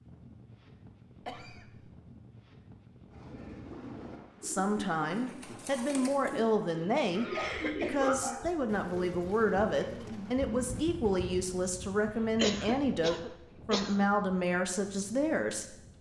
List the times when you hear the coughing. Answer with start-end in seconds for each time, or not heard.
1.2-1.9, 7.1-8.2, 12.3-14.1.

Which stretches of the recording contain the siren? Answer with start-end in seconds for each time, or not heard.
not heard.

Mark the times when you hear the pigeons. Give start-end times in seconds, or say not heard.
3.1-10.7.